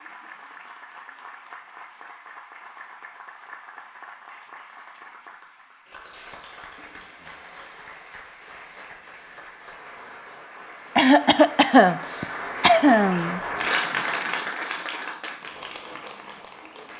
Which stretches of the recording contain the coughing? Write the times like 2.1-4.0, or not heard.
10.9-13.4.